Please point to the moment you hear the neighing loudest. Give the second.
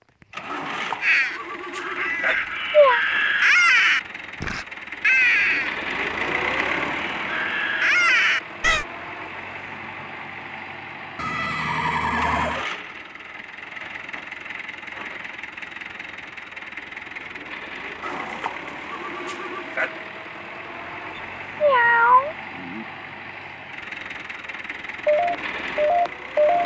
12 s.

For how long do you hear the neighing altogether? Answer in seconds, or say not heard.
5 s.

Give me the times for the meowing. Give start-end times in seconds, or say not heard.
2.2-3.0, 21.1-22.9.